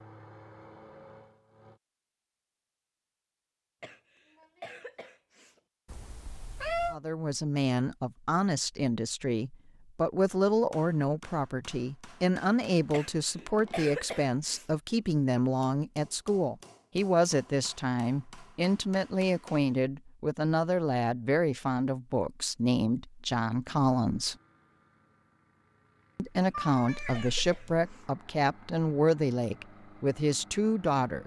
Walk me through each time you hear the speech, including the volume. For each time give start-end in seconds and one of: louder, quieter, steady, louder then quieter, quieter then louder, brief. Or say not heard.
6.9-24.4 steady
26.1-31.2 steady.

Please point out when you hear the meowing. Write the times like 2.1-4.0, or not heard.
5.9-7.0, 26.5-27.9.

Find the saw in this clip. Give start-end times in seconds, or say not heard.
not heard.